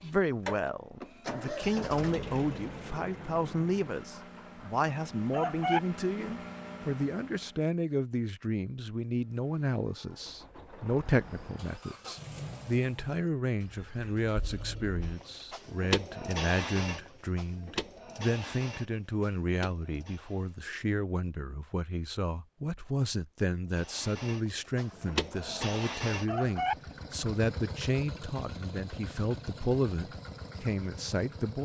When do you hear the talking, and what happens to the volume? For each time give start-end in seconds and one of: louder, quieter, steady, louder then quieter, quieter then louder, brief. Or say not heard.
0.0-31.6 steady.